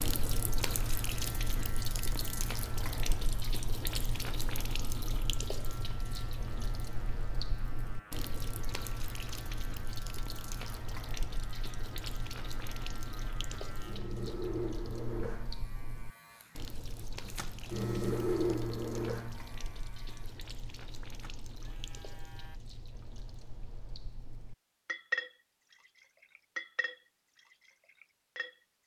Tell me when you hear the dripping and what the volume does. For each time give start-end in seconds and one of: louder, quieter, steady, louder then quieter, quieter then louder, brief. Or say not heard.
0.0-28.6 quieter then louder.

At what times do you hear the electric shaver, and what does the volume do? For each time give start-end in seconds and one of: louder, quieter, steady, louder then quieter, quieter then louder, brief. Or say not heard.
0.0-22.6 louder.